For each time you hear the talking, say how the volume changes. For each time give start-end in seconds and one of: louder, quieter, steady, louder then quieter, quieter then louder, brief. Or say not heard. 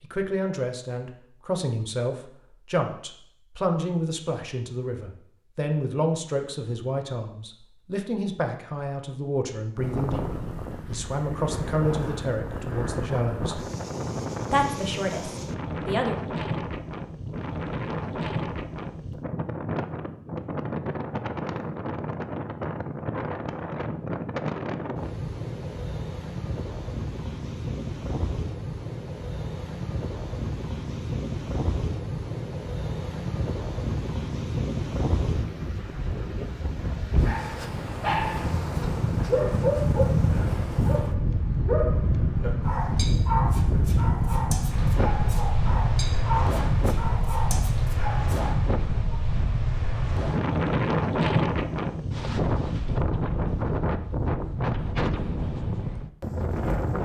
0.0-13.7 steady
14.5-16.1 brief.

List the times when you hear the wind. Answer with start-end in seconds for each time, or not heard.
9.8-57.0.